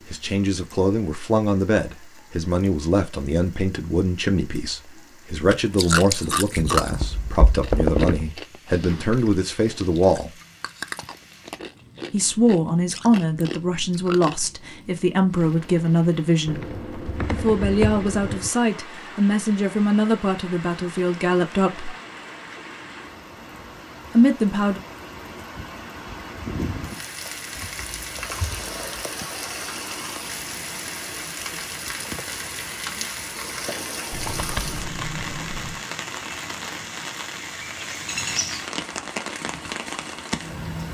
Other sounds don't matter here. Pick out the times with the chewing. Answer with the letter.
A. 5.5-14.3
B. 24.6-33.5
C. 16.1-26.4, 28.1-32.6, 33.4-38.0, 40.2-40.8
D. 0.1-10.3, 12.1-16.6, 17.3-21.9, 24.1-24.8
A.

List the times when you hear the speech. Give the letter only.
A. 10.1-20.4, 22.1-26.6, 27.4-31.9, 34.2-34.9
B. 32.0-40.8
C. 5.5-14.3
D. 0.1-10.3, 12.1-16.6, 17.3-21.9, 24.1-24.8
D.